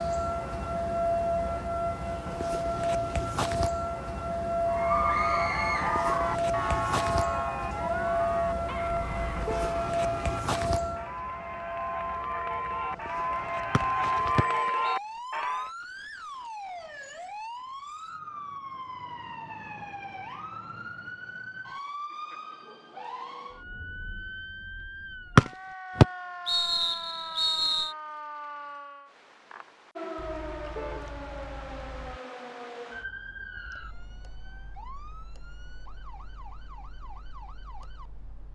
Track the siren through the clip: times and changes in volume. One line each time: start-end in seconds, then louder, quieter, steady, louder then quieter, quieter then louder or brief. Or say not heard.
0.0-38.5 quieter.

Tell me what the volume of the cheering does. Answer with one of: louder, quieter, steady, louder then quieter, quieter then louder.
quieter then louder.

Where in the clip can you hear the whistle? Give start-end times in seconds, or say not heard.
13.7-14.9, 25.4-27.9.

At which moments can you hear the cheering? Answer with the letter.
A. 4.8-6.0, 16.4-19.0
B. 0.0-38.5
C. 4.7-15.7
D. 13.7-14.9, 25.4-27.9
C.